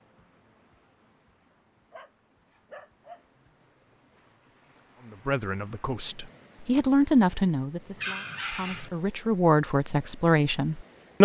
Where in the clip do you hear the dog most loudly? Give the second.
8 s.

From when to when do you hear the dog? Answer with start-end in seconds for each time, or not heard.
1.5-3.2, 8.0-8.9.